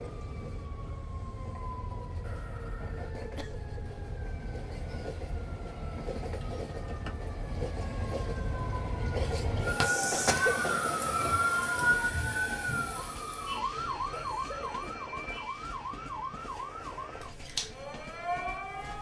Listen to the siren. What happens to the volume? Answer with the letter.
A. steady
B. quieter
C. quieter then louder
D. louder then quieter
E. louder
D.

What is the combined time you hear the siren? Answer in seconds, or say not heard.
19 s.